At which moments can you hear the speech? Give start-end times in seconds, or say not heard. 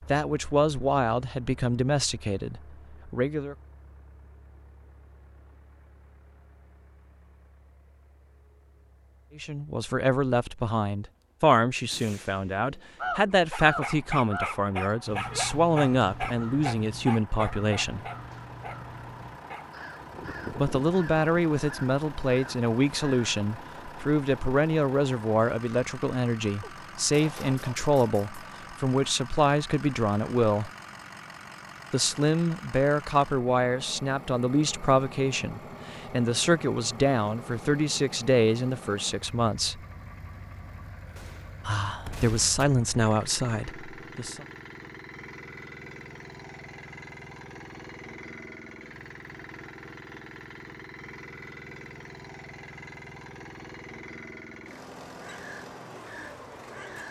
0.1-3.5, 9.3-18.0, 20.5-30.7, 31.9-39.8, 41.6-44.5.